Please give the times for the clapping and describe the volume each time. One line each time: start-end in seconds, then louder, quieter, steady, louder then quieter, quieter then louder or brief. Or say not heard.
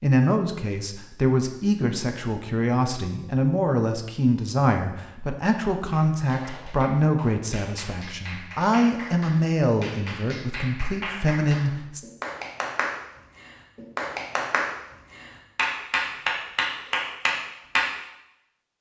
5.9-17.9 louder.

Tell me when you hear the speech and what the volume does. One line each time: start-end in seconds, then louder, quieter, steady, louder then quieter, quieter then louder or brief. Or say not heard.
0.0-12.0 steady.